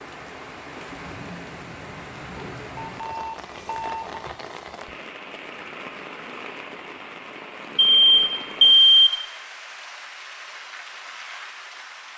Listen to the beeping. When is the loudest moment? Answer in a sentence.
The volume of the beeping peaks at 9 seconds.